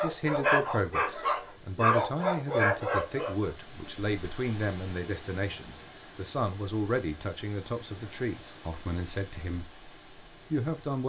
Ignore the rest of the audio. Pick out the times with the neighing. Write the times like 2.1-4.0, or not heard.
not heard.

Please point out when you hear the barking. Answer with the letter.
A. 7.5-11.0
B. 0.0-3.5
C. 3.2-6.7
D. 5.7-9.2
B.